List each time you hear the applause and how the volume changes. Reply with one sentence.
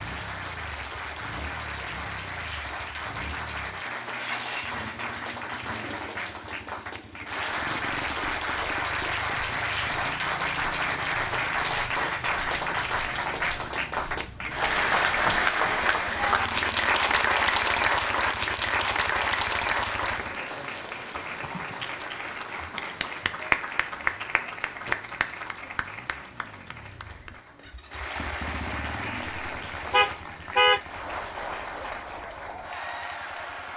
The applause can be heard from 0.0 to 33.7 s, getting louder then quieter.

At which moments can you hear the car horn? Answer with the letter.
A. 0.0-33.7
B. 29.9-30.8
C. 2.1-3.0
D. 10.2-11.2
B.